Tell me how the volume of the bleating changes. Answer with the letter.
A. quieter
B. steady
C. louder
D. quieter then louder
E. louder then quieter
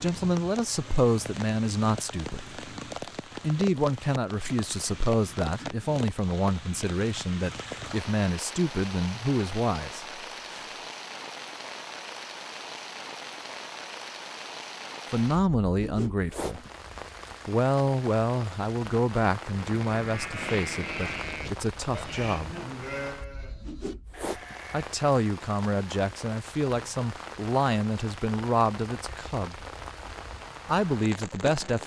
A.